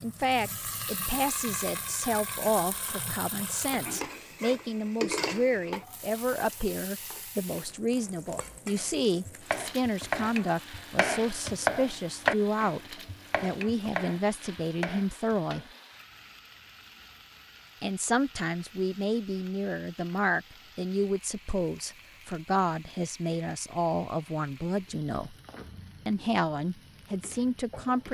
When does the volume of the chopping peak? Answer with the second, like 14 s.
12 s.